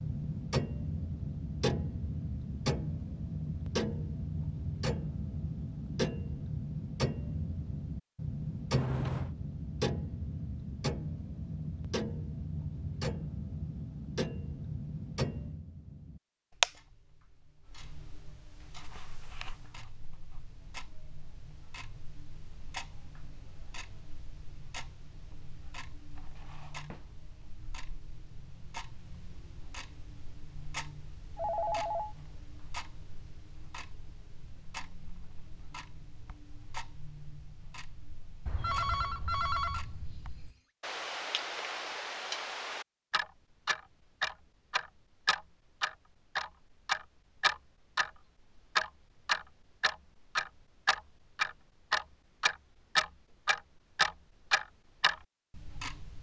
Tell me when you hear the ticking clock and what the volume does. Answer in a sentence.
The ticking clock can be heard from 0.0 to 56.1 s, getting quieter then louder.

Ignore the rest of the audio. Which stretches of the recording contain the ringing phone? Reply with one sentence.
You can hear the ringing phone from 8.7 to 9.3 s, from 31.4 to 32.1 s and from 38.5 to 40.5 s.